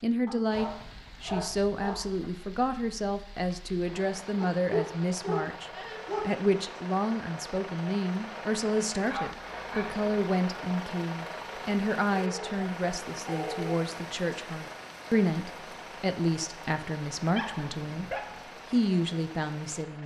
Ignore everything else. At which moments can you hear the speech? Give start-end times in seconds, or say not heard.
0.0-18.1, 18.7-20.0.